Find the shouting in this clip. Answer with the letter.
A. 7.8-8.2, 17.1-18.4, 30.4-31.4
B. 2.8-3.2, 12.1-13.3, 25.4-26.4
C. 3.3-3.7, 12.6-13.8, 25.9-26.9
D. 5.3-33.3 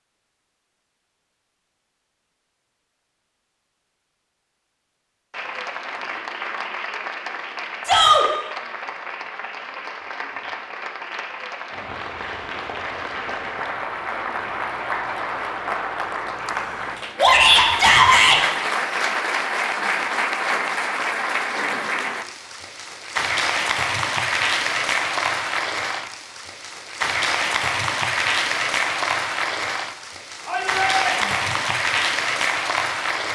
A.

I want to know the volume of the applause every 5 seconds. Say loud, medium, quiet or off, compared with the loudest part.
off, medium, medium, loud, loud, loud, loud.